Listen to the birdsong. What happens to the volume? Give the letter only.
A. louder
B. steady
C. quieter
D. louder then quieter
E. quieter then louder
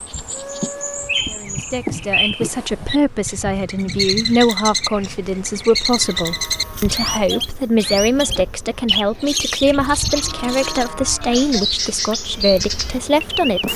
B.